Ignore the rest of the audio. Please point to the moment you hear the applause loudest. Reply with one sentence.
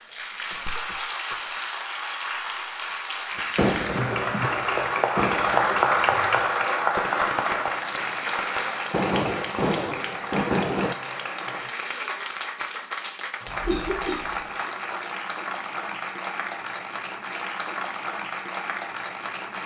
The loudest moment of the applause is at 6 seconds.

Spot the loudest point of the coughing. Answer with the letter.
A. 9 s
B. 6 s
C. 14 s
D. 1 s
C.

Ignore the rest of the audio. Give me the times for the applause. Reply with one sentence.
The applause can be heard from 0.0 to 19.6 s.